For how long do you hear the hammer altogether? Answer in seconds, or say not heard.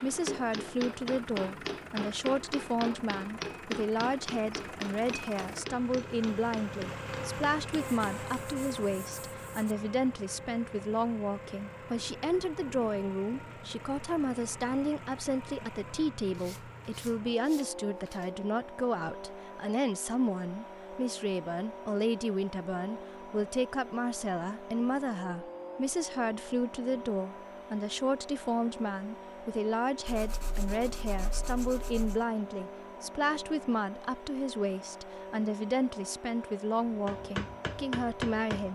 10 s.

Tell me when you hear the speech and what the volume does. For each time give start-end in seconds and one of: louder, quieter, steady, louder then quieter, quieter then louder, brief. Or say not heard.
0.0-38.7 steady.